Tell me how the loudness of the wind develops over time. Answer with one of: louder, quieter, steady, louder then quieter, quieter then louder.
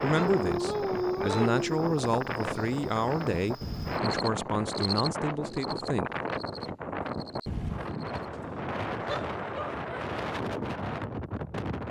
steady.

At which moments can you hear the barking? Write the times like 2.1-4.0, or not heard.
0.1-1.8, 8.2-10.1.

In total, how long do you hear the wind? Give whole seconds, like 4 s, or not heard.
12 s.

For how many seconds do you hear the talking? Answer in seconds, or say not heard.
6 s.